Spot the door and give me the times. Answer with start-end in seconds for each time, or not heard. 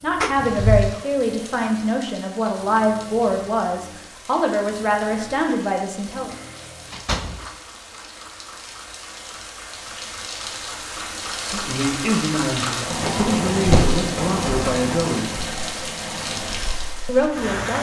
0.2-0.9, 6.9-7.5, 12.8-14.1.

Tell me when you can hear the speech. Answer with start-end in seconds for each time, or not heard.
0.0-6.3, 11.3-15.4, 17.1-17.7.